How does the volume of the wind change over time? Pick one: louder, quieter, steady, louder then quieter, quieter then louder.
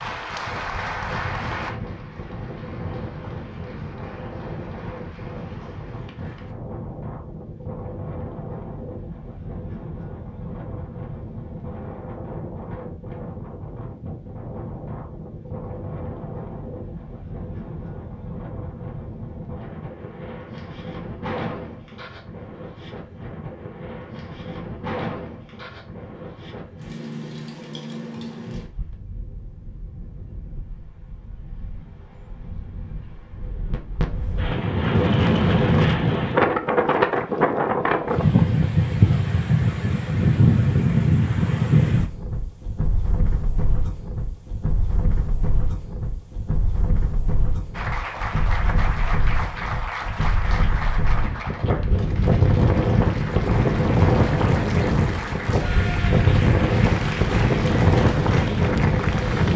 louder.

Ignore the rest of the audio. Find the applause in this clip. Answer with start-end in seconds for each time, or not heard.
0.0-6.5, 47.7-59.5.